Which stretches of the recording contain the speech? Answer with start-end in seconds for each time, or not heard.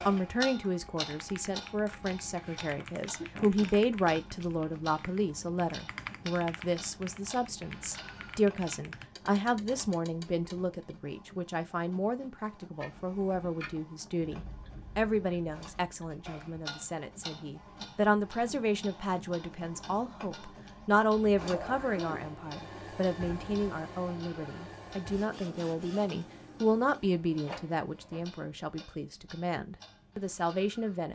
0.1-31.1.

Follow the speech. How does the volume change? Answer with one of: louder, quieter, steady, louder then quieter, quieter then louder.
steady.